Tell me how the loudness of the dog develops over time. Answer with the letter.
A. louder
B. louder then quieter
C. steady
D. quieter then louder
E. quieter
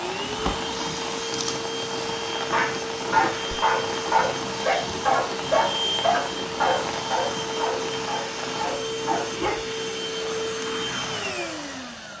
E.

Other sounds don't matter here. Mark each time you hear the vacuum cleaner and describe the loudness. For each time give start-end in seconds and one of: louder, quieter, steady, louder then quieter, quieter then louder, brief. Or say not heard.
0.0-12.1 steady.